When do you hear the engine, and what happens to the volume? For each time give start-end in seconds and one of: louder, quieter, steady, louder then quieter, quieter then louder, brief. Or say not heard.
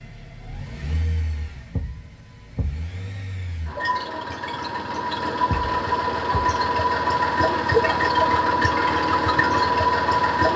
0.0-10.5 louder.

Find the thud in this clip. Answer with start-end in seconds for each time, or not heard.
1.7-2.8, 5.5-6.5.